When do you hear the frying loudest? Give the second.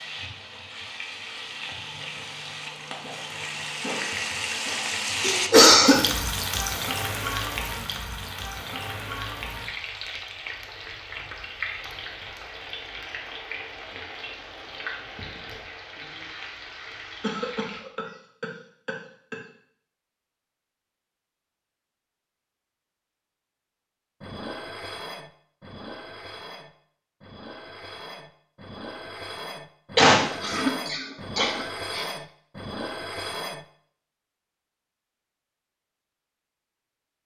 5 s.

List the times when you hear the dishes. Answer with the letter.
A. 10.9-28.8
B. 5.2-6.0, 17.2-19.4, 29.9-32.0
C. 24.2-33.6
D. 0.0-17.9
C.